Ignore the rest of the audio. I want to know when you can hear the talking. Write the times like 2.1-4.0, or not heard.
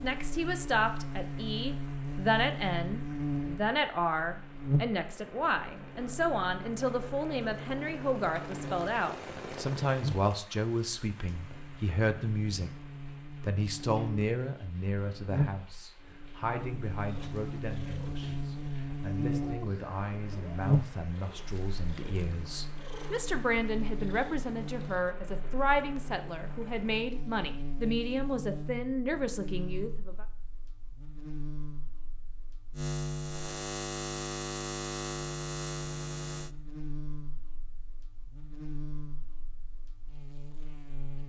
0.0-12.7, 13.4-30.2.